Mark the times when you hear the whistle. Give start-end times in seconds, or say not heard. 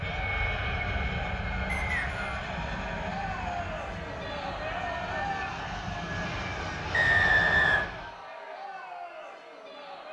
1.6-2.1, 6.9-7.9.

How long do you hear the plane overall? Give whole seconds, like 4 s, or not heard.
8 s.